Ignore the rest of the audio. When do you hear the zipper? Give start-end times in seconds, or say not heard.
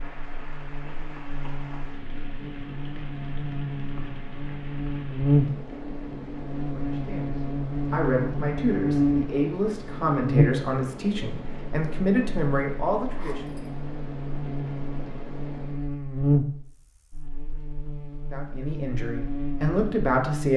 13.2-13.7.